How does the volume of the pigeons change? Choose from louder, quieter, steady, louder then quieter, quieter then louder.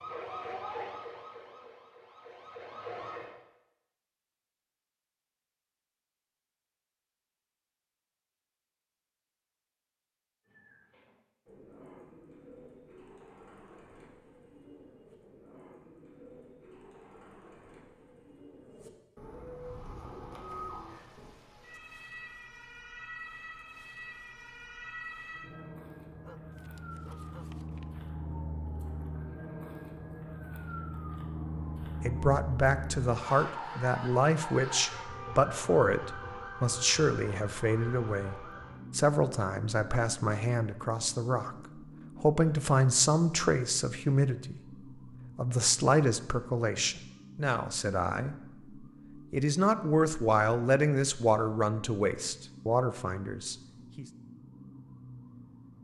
louder.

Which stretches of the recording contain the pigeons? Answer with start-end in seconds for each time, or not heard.
10.4-21.3.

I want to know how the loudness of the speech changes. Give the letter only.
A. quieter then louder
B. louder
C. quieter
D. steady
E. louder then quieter
D.